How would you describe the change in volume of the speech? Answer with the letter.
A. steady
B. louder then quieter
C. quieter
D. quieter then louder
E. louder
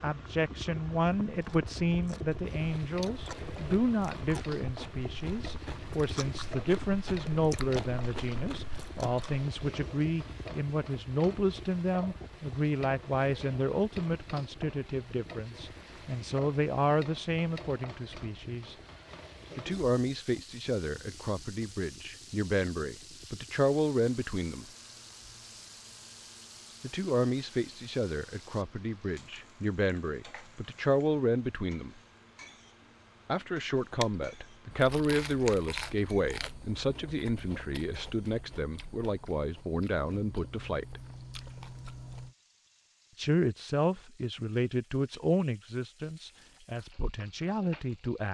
A.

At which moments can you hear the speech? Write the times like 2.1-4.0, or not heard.
0.0-18.8, 19.6-24.6, 26.8-31.9, 33.2-41.0, 43.1-48.2.